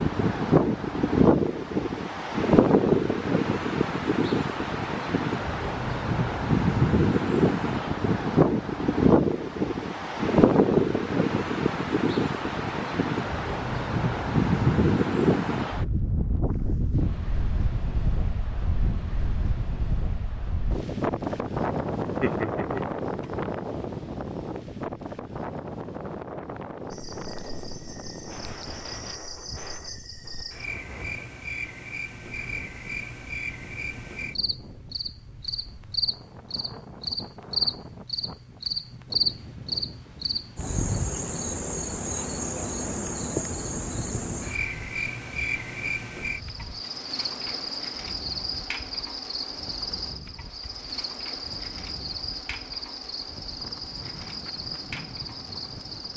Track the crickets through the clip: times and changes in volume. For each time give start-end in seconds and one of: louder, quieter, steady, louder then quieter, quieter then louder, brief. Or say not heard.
26.9-56.1 louder then quieter.